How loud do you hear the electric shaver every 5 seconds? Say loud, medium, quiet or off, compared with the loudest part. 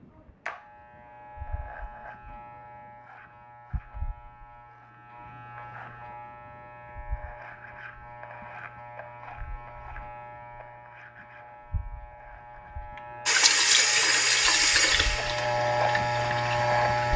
quiet, quiet, quiet, loud.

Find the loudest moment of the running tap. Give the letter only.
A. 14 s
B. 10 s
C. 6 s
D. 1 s
A.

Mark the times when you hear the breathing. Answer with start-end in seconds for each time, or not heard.
not heard.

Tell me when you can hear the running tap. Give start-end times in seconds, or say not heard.
13.2-17.1.